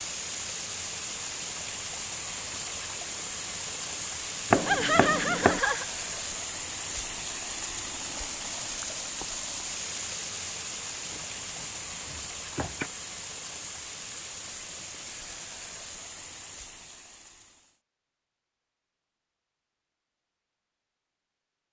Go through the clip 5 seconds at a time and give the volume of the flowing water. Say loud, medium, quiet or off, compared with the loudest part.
loud, loud, loud, medium, off.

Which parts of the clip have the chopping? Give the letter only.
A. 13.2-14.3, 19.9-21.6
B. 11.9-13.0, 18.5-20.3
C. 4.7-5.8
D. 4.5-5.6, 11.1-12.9
D.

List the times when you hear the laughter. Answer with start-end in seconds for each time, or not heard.
4.7-5.8.